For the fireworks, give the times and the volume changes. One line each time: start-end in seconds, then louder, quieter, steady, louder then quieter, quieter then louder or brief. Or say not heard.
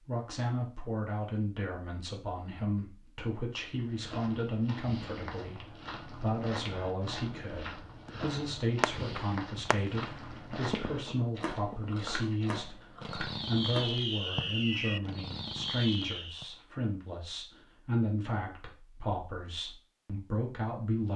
8.1-16.4 quieter then louder.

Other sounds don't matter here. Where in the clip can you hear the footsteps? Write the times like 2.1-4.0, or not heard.
3.7-14.1.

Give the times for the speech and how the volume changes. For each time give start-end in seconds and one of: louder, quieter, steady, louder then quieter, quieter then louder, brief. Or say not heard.
0.1-21.1 steady.